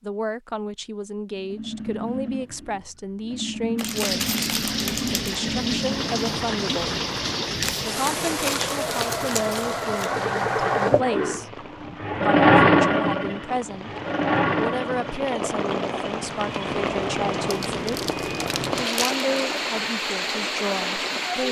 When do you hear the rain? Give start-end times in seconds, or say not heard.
3.9-21.4.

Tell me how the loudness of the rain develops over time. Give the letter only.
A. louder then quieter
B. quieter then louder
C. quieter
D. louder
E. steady
B.